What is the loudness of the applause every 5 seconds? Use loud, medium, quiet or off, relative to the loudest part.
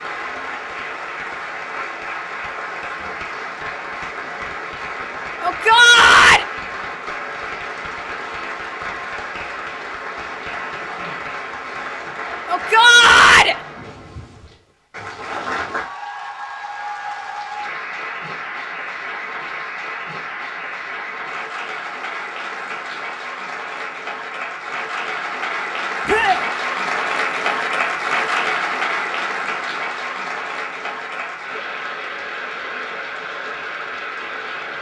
medium, medium, medium, medium, medium, loud, medium.